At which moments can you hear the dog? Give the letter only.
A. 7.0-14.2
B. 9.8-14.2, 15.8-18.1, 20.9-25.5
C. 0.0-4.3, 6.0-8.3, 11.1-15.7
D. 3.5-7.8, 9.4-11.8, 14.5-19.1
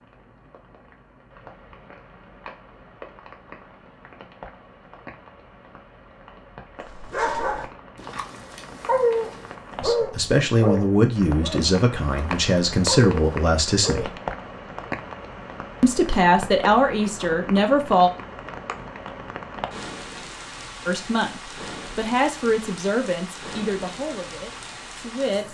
A.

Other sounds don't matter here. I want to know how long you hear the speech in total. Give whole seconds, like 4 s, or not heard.
11 s.